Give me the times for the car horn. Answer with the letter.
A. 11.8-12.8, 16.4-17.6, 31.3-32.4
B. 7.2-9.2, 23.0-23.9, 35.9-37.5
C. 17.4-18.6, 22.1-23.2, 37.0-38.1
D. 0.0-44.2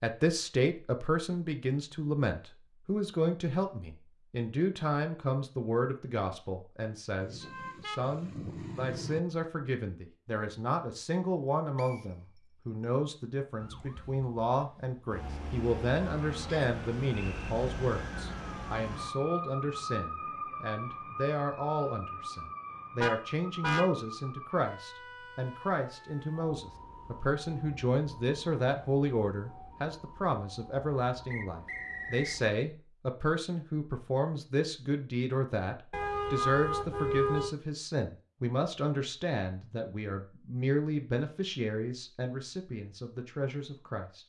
B.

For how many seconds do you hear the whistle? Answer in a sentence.
The whistle can be heard for 3 seconds in total.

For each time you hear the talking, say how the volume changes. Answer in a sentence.
You can hear the talking from 0.0 to 44.2 s, at a steady volume.